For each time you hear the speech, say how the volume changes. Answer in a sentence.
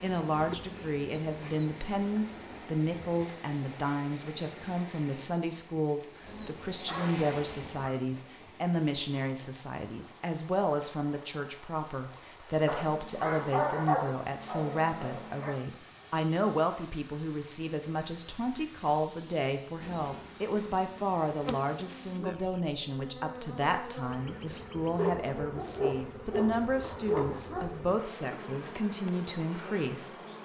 The speech can be heard from 0.0 to 30.4 s, at a steady volume.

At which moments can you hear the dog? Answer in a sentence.
You can hear the dog from 6.8 to 8.2 s, from 12.7 to 15.6 s and from 24.9 to 27.9 s.